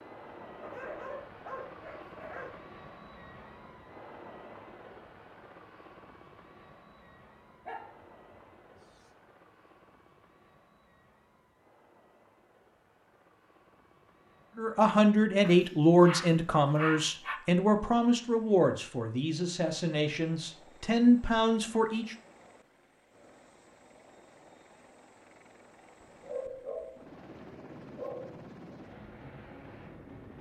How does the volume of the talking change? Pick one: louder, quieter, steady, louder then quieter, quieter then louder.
quieter then louder.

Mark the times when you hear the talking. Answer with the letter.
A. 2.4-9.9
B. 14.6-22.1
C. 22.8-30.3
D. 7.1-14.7
B.